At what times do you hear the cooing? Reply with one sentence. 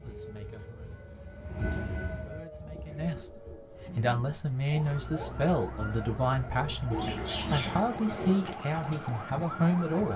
You can hear the cooing from 2.5 to 9.0 s.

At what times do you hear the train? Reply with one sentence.
You can hear the train from 0.0 to 2.5 s.